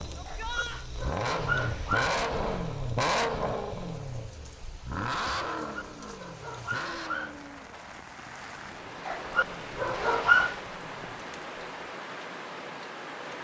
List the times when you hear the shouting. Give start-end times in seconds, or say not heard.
0.1-0.8.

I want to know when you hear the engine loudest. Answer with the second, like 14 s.
3 s.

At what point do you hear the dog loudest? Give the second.
10 s.